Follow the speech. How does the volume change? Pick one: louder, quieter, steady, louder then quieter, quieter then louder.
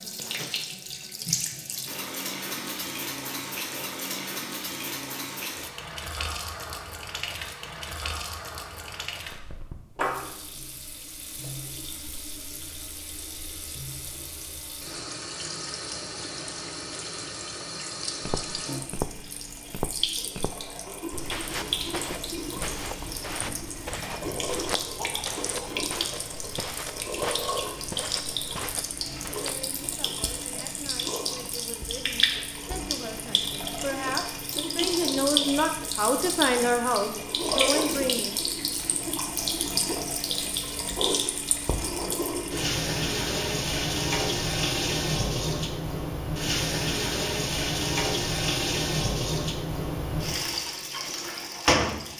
louder.